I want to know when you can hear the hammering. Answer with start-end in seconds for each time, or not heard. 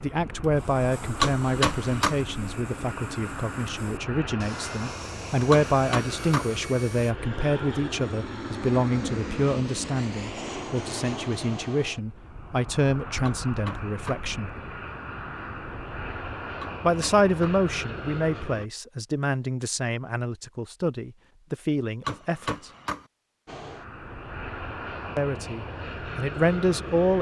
1.2-2.2, 5.5-6.5, 13.2-14.2, 16.6-17.6, 22.1-23.1.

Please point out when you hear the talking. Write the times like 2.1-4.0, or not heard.
0.0-14.5, 16.8-22.7, 25.1-27.1.